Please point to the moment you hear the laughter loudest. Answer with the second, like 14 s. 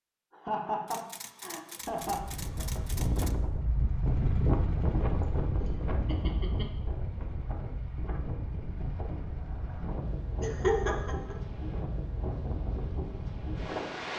11 s.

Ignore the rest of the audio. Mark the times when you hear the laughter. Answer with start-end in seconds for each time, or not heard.
0.3-2.2, 6.0-6.8, 10.4-11.3.